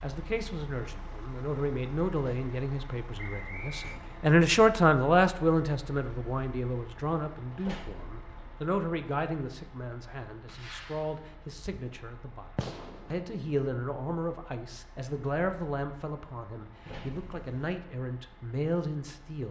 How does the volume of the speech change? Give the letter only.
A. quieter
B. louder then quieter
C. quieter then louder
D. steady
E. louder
B.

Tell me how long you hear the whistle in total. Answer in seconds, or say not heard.
2 s.